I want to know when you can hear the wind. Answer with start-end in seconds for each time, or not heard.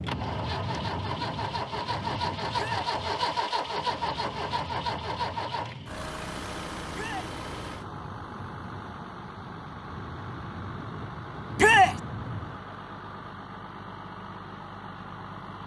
0.0-12.6.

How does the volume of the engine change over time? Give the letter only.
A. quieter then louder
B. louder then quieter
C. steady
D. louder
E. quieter
E.